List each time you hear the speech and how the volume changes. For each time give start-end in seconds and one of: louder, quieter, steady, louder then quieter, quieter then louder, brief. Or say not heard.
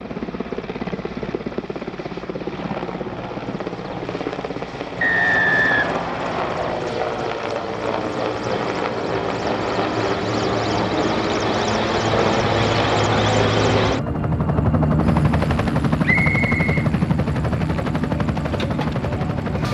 not heard.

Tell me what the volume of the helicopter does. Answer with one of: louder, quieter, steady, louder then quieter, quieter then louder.
louder.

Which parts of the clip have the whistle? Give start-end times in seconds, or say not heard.
5.0-6.8, 16.0-16.7.